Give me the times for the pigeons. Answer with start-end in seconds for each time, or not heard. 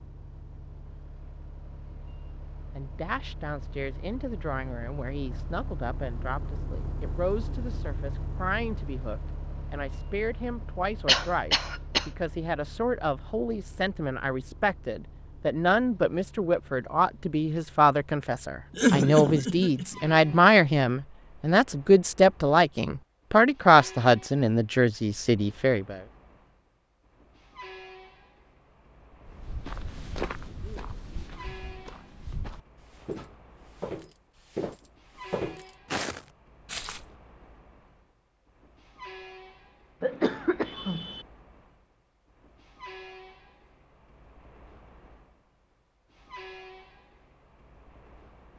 not heard.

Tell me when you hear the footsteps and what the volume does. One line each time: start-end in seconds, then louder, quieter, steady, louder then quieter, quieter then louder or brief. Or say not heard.
29.2-37.0 quieter then louder.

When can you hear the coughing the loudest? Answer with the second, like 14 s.
19 s.